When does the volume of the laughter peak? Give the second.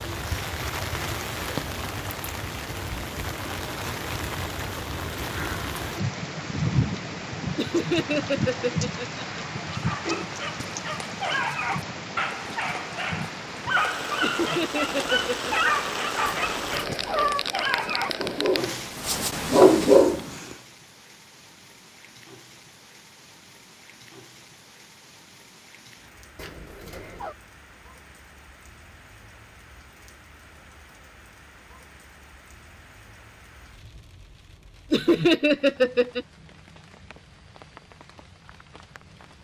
35 s.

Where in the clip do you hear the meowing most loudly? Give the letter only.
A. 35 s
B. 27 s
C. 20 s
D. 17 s
D.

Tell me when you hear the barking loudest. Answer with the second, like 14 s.
20 s.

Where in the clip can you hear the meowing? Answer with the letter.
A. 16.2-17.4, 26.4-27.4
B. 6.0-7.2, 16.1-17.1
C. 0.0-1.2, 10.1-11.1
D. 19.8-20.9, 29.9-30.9
A.